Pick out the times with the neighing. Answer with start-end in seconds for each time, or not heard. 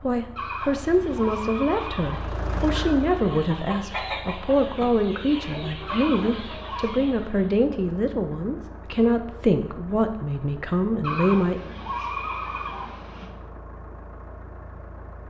0.3-3.0, 5.8-7.0, 11.0-13.3.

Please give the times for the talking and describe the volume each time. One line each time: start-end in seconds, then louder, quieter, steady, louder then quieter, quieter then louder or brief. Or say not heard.
0.0-11.7 steady.